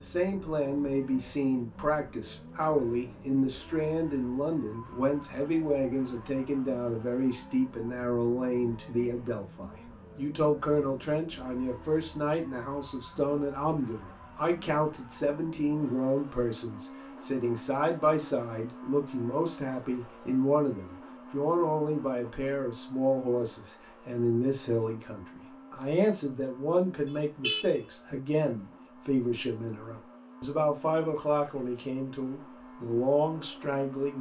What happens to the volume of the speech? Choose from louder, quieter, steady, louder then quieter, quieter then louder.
steady.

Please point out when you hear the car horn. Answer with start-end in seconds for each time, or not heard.
27.1-28.2.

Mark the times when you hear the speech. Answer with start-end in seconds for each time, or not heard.
0.0-34.1.